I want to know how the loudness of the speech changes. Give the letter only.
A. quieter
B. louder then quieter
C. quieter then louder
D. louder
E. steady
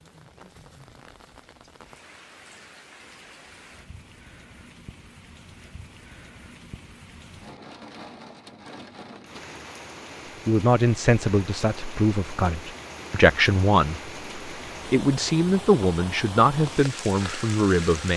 E.